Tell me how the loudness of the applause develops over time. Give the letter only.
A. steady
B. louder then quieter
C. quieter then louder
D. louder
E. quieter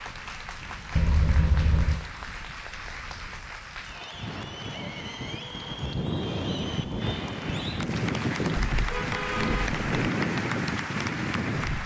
D.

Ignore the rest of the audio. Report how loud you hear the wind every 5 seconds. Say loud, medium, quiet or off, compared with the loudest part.
quiet, loud, loud.